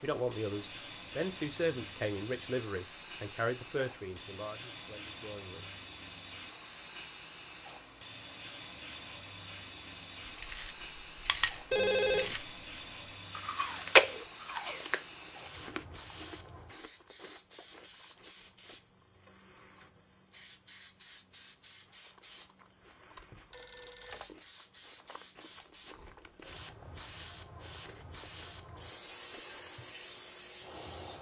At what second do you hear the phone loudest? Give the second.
12 s.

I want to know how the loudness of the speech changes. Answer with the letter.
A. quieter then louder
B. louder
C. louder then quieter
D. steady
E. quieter
E.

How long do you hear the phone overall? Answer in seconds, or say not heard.
2 s.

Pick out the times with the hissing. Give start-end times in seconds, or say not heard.
0.0-31.1.